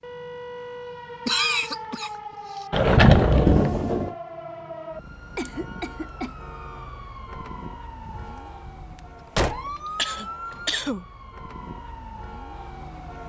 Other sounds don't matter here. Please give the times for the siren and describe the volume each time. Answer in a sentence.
You can hear the siren from 0.0 to 13.2 s, at a steady volume.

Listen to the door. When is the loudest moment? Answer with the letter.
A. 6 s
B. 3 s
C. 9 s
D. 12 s
B.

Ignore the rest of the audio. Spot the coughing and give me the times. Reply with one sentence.
You can hear the coughing from 1.2 to 2.6 s, from 5.3 to 6.3 s and from 9.9 to 11.1 s.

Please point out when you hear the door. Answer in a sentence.
The door can be heard from 2.7 to 4.1 s and from 8.0 to 9.8 s.